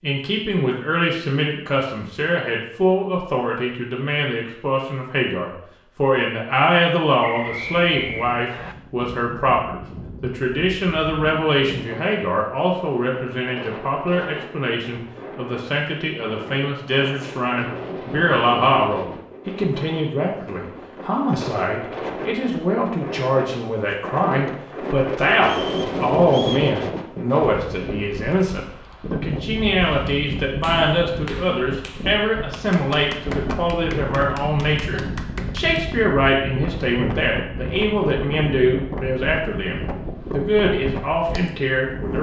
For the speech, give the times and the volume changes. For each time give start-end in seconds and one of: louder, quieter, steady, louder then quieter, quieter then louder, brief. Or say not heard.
0.0-42.1 steady.